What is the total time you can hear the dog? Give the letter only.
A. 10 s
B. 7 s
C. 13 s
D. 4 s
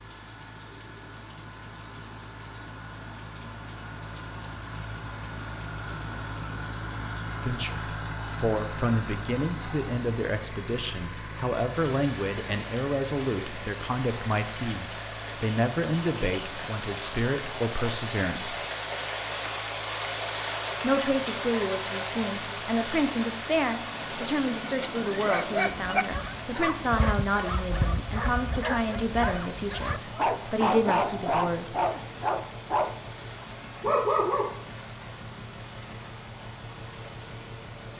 A.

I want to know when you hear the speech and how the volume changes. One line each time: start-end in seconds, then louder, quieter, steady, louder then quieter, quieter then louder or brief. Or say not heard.
7.3-18.6 steady
20.8-31.8 steady.